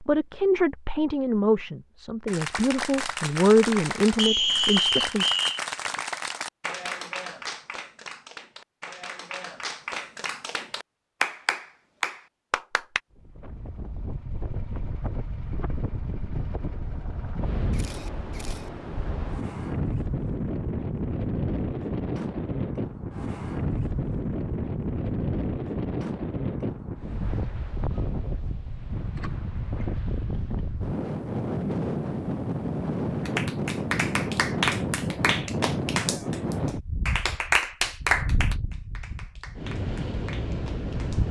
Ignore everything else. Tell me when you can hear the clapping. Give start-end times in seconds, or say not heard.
2.2-13.0, 33.2-41.2.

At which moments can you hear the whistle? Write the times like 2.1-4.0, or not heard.
4.2-5.6.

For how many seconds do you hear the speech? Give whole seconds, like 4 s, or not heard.
5 s.